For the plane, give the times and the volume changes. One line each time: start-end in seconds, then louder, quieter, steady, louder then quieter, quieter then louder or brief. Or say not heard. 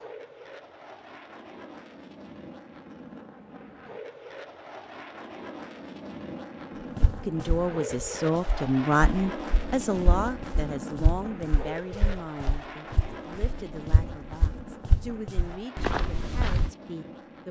0.0-17.4 louder then quieter.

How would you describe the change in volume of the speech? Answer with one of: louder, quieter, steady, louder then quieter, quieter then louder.
quieter.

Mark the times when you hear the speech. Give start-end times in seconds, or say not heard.
7.2-17.4.